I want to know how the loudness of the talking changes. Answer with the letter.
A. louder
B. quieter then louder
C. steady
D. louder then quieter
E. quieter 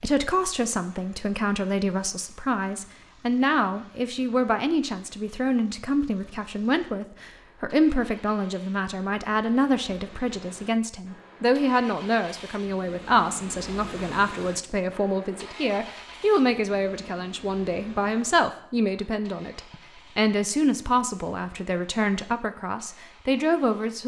C.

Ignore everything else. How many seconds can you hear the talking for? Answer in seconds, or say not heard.
24 s.